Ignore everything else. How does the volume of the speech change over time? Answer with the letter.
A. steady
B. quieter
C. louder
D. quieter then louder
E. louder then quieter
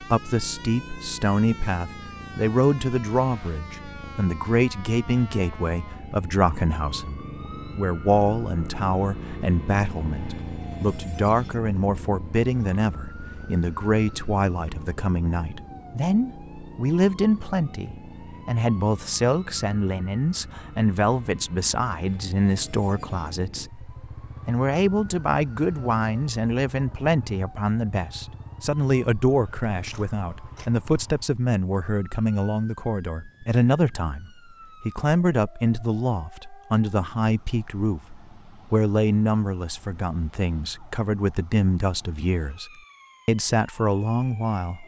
A.